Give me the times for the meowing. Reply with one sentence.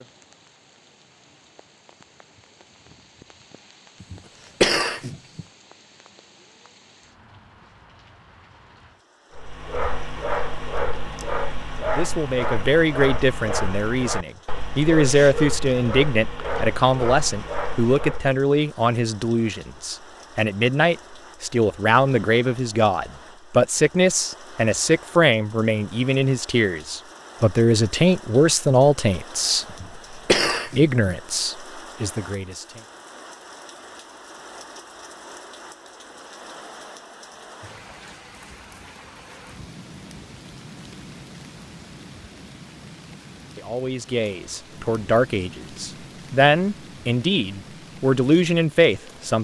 You can't hear the meowing here.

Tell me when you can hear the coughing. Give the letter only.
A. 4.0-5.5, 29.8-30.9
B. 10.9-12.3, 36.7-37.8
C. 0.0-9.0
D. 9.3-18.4
A.